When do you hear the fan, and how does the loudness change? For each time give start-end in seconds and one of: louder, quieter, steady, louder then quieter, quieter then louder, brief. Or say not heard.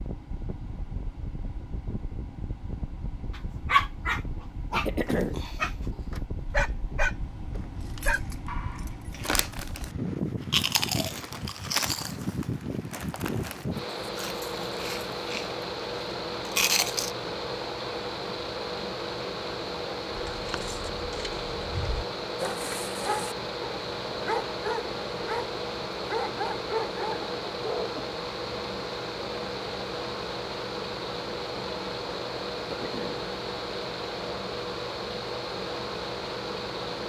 0.0-37.0 louder.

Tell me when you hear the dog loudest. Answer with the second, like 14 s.
4 s.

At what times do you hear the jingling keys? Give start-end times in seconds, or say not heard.
7.5-9.2, 20.1-22.1.